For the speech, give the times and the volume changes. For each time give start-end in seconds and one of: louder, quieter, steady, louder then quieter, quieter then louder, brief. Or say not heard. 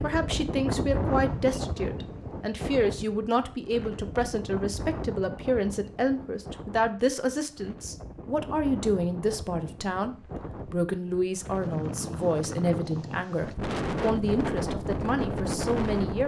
0.0-16.2 steady.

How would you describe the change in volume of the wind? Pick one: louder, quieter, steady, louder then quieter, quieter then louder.
quieter then louder.